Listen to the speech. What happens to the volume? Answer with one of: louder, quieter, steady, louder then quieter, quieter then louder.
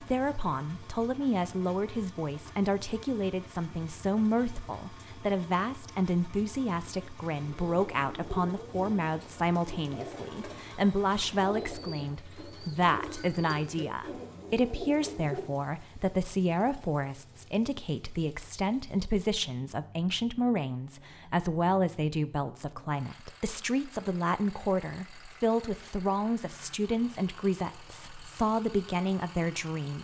steady.